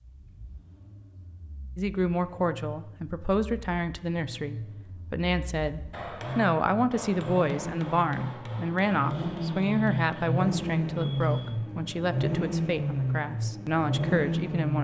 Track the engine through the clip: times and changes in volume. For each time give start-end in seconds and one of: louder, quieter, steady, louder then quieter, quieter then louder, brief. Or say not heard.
0.0-14.8 louder.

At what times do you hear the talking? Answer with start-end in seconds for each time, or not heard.
1.8-14.8.